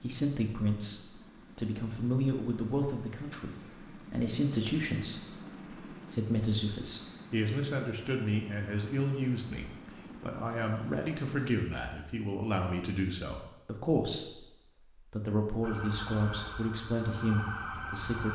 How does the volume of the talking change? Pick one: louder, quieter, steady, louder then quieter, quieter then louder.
steady.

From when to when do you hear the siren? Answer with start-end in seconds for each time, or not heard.
15.6-18.2.